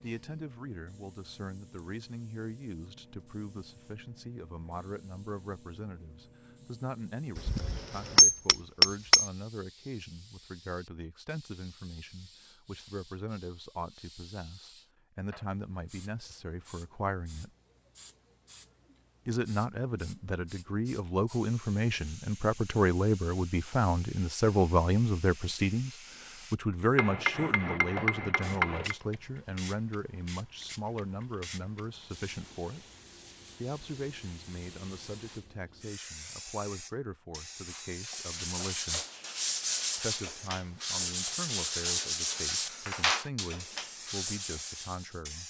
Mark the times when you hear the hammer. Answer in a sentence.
You can hear the hammer from 7.3 to 9.2 s and from 26.9 to 28.9 s.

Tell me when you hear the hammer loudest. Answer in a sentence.
The volume of the hammer peaks at 8 seconds.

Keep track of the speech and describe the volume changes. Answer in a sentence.
The loudness of the speech goes up, then down.